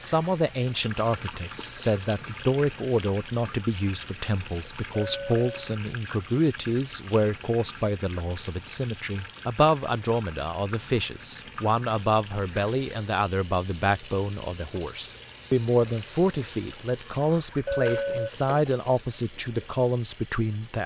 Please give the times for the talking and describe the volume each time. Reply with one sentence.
The talking can be heard from 0.0 to 20.8 s, at a steady volume.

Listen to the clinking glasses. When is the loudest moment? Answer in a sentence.
The loudest moment of the clinking glasses is at 18 seconds.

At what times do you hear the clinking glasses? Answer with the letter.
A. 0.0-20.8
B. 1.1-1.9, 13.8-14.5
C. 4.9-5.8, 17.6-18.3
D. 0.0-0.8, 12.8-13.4
C.